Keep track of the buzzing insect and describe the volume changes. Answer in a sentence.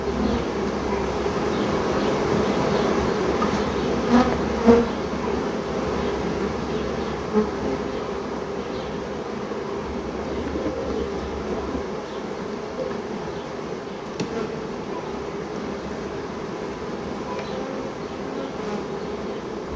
The loudness of the buzzing insect goes down.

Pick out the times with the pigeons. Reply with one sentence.
The pigeons can be heard from 9.8 to 11.8 s.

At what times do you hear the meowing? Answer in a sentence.
You can't hear the meowing here.